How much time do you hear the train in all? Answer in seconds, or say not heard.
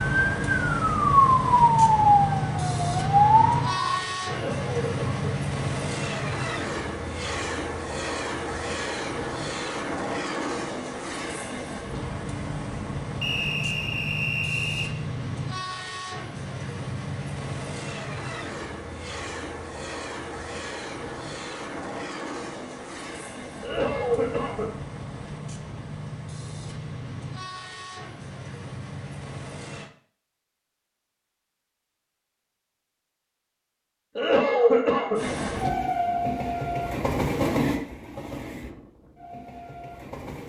35 s.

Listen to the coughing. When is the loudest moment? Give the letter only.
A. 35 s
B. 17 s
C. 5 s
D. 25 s
A.